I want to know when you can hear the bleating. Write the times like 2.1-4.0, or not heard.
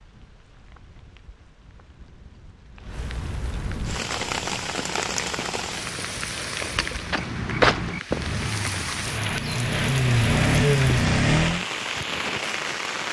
not heard.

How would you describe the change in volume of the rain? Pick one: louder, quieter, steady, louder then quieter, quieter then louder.
louder.